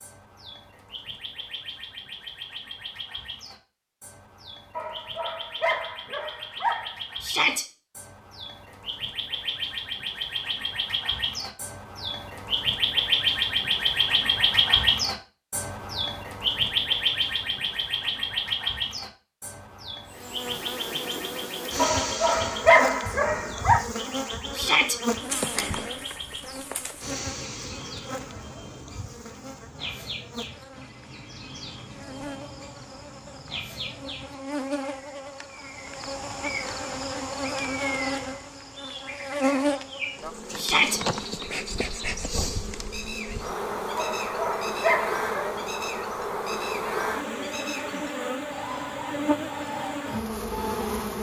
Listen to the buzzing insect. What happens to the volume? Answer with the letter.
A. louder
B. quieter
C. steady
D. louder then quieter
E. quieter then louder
E.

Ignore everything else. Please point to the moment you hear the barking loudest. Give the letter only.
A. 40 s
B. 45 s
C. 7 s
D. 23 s
D.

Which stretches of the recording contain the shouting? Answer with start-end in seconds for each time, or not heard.
7.2-7.7, 24.6-25.0, 40.5-41.0.